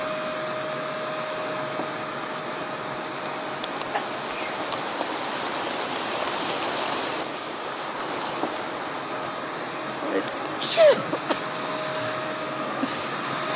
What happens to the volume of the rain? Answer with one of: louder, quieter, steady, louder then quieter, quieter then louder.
louder then quieter.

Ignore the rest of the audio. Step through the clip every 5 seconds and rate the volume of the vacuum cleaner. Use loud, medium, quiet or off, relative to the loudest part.
loud, medium, loud.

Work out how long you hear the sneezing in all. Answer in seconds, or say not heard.
2 s.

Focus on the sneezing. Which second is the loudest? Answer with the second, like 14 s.
11 s.